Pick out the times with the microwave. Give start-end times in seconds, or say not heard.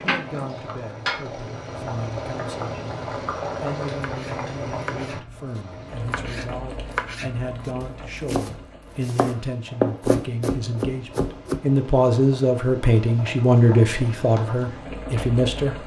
not heard.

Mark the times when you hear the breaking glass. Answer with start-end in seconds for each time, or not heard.
not heard.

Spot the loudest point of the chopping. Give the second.
10 s.